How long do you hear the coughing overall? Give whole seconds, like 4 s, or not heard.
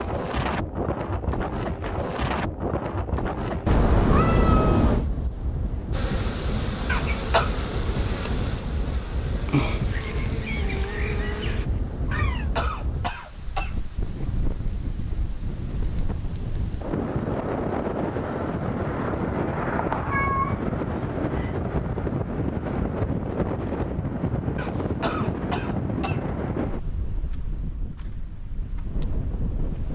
4 s.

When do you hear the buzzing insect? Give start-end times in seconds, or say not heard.
5.9-11.7.